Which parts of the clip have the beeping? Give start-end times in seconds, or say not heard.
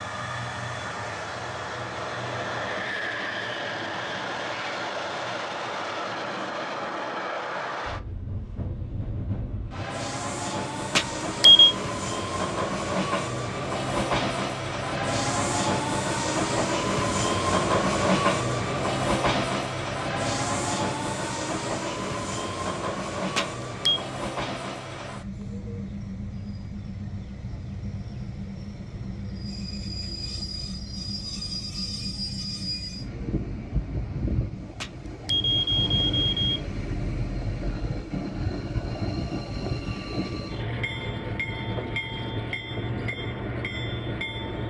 10.9-11.8, 23.4-24.1, 34.8-36.6.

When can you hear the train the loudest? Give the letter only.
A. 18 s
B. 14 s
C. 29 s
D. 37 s
A.